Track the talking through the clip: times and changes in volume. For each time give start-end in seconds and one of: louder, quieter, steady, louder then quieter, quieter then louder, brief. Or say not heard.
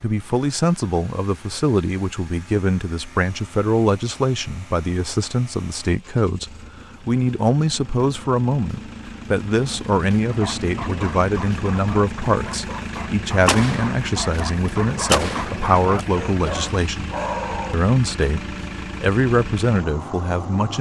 0.0-20.7 steady.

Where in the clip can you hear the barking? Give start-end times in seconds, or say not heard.
10.3-17.8.